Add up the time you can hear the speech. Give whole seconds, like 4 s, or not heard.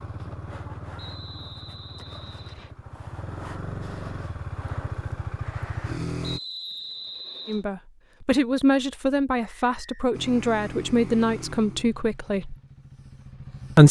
5 s.